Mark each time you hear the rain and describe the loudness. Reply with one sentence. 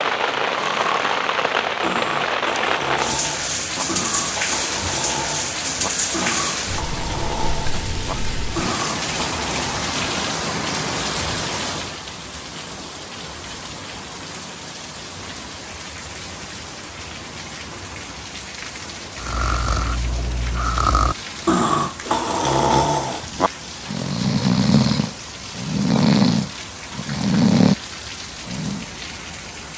The rain can be heard from 0.0 to 29.7 s, getting quieter.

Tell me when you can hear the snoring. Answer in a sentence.
The snoring can be heard from 0.5 to 9.8 s, from 19.1 to 27.8 s and from 28.4 to 28.9 s.